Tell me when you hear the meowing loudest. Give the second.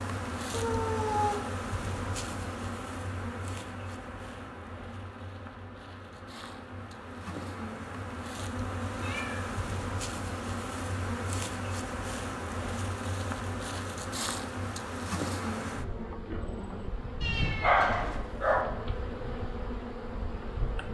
18 s.